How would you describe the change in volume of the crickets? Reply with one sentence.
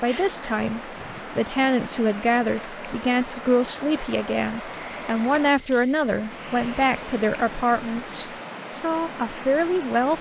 The loudness of the crickets goes up, then down.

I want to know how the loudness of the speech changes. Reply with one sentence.
The volume of the speech stays about the same.